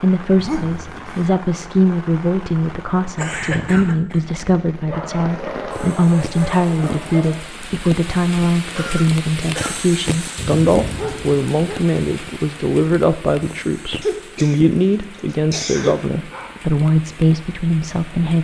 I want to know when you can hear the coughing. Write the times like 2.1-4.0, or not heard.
3.1-4.2, 8.8-9.8, 14.0-15.9.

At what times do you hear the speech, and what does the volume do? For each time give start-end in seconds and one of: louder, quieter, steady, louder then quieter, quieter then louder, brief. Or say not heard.
0.0-18.4 steady.